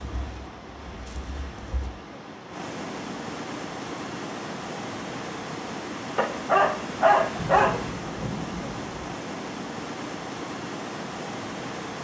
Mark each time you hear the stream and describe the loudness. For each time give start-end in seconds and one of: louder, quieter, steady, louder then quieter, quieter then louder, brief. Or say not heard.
0.0-11.9 louder.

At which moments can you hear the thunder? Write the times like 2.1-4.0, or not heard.
7.3-9.1.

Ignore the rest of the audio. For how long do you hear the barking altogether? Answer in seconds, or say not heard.
2 s.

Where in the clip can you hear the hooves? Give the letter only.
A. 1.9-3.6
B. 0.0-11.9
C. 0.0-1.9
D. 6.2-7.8
C.